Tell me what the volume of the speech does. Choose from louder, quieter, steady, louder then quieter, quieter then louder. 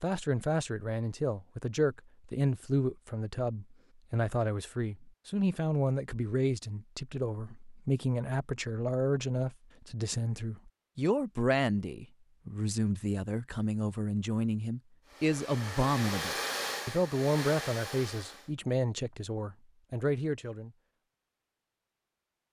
steady.